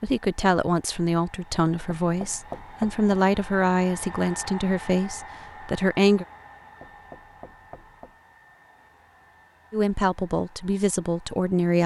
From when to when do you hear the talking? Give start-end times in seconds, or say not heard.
0.0-6.2, 9.7-11.8.